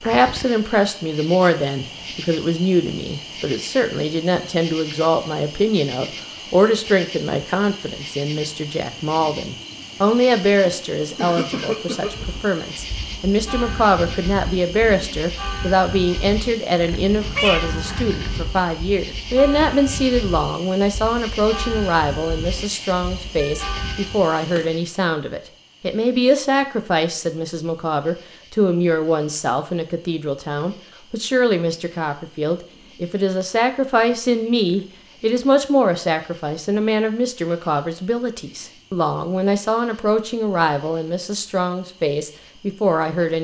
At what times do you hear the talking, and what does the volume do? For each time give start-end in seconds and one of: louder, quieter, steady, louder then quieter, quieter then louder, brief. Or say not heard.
0.0-43.3 steady.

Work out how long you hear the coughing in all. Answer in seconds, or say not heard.
2 s.